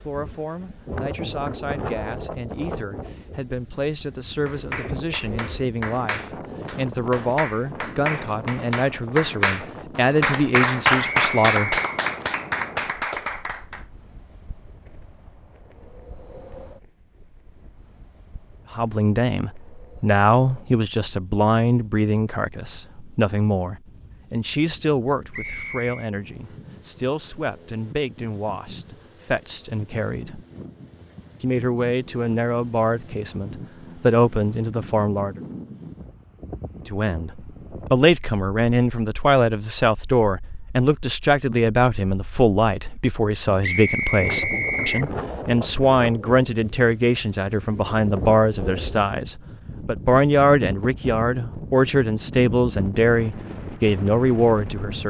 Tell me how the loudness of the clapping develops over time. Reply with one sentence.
The volume of the clapping goes up, then down.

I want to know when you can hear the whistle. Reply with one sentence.
You can hear the whistle from 11.2 to 11.9 s, from 25.3 to 26.1 s and from 43.6 to 45.1 s.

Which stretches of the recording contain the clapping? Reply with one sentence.
The clapping can be heard from 4.5 to 13.8 s.